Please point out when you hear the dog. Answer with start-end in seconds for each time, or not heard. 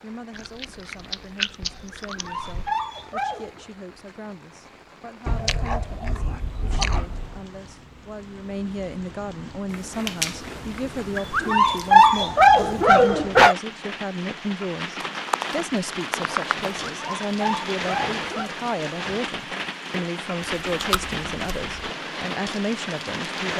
2.0-3.6, 11.2-13.6, 16.9-18.5.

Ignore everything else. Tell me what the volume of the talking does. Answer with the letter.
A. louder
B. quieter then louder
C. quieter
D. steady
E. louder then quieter
A.